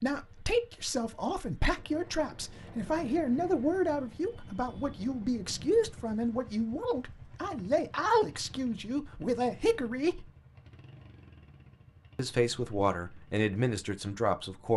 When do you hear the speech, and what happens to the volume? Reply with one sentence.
The speech can be heard from 0.0 to 10.3 s, at a steady volume; and briefly from 12.2 to 14.7 s.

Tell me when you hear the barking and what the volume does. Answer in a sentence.
You can't hear the barking here.